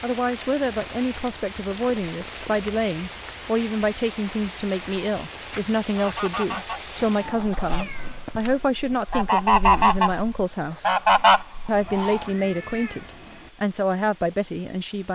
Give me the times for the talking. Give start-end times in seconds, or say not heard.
0.0-10.9, 11.7-15.0.